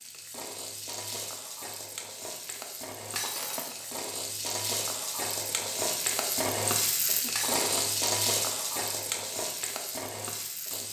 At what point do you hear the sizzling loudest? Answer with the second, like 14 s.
8 s.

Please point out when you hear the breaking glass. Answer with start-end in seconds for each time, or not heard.
3.1-3.9, 7.3-8.0.